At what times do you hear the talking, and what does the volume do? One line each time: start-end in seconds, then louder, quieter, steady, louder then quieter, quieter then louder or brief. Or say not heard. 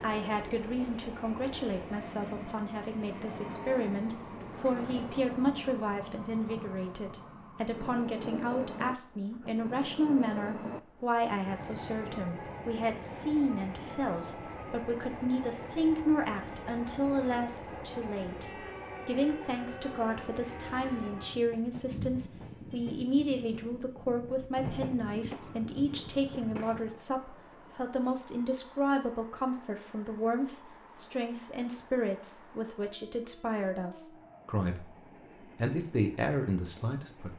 0.0-37.3 steady.